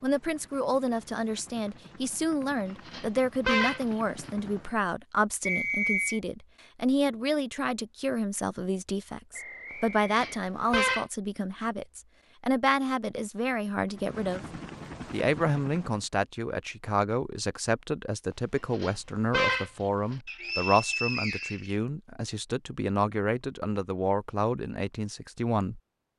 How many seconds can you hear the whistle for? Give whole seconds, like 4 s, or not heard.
4 s.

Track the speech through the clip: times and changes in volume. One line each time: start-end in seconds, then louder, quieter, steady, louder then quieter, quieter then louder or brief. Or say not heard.
0.0-14.4 steady
15.1-25.8 steady.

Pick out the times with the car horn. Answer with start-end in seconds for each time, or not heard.
2.9-4.3, 10.1-11.1, 18.7-20.1.